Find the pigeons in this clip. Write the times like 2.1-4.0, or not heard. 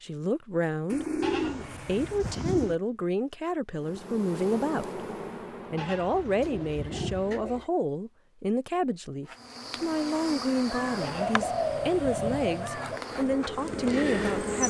0.9-2.8, 6.1-7.7, 10.7-13.0.